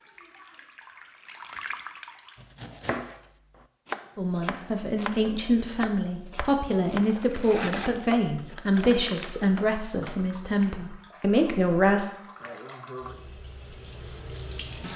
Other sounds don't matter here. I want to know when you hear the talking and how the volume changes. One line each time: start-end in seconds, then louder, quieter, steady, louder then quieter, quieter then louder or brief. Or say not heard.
4.2-12.1 steady.